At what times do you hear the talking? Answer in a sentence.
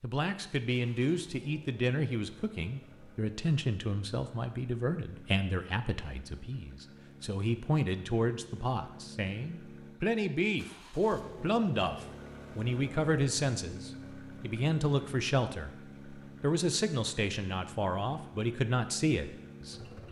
The talking can be heard from 0.0 to 20.0 s.